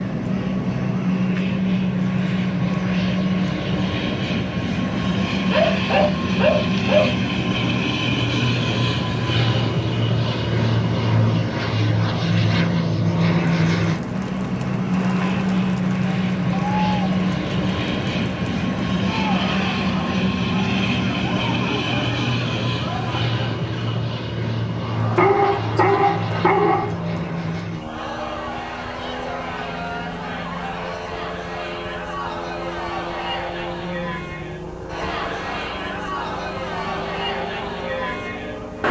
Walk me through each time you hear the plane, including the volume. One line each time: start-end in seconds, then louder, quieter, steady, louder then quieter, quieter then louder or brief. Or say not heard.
0.0-38.8 quieter.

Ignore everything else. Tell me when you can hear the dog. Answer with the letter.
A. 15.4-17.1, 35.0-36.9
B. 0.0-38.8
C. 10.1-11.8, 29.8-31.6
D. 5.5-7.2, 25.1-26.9
D.